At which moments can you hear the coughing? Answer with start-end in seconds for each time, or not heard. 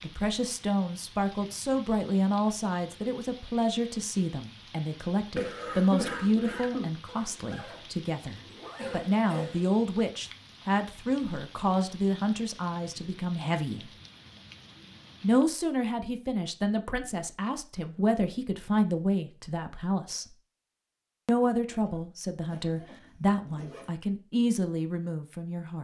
5.3-7.0, 8.8-9.7, 21.4-23.0.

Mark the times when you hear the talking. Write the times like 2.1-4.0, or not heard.
0.0-13.9, 15.2-20.4, 21.2-25.7.